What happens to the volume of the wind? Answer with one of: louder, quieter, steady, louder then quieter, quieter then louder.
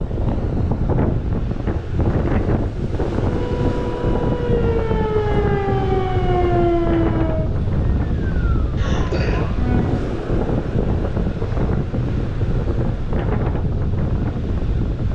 steady.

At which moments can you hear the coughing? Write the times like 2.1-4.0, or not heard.
8.8-9.4.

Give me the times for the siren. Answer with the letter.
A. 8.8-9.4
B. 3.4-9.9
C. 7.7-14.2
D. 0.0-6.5
B.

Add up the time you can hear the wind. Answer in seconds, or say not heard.
15 s.